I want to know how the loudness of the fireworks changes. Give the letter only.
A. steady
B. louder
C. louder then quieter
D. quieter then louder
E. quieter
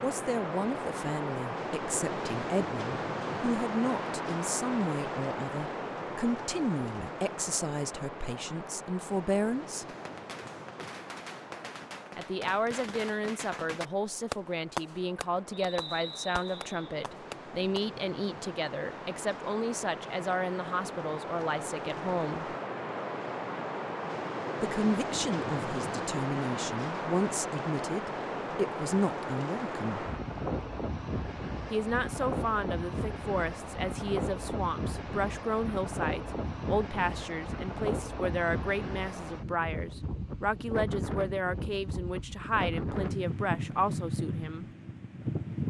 C.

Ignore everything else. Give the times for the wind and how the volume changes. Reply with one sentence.
You can hear the wind from 0.0 to 45.6 s, getting quieter then louder.